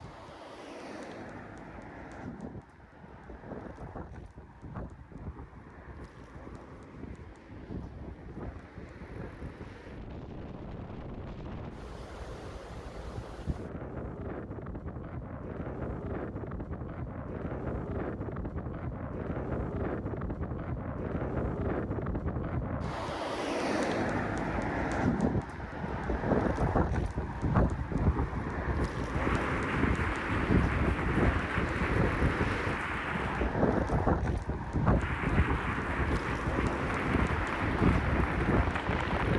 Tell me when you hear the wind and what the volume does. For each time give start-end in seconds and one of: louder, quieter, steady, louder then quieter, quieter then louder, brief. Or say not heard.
0.0-39.3 louder.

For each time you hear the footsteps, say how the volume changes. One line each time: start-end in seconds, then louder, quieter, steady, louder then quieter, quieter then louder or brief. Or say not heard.
not heard.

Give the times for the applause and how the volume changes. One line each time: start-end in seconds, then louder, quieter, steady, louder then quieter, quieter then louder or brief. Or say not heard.
29.0-33.6 steady
34.9-39.3 steady.